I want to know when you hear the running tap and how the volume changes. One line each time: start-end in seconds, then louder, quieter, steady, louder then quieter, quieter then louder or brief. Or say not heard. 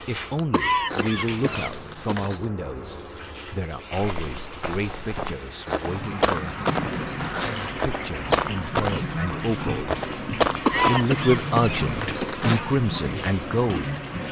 0.0-14.2 louder.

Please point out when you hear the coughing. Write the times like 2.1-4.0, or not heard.
0.3-2.3, 10.5-12.4.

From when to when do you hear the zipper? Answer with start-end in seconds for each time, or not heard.
0.8-2.5, 5.7-7.8, 10.7-12.6.